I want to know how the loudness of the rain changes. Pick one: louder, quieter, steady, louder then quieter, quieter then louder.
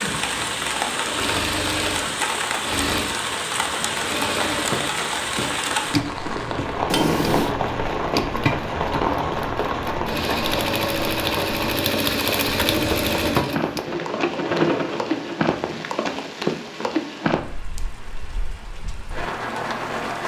steady.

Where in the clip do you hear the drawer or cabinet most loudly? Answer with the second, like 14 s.
7 s.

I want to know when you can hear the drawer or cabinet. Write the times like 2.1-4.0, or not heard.
6.8-7.5, 12.4-13.4.